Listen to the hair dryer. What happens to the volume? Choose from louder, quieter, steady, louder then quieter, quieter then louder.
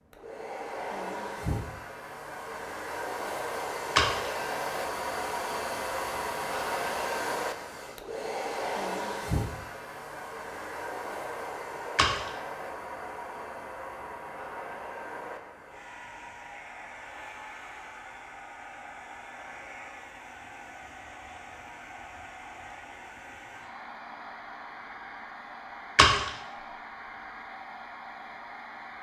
quieter.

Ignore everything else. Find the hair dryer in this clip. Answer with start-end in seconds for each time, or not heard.
0.1-28.9.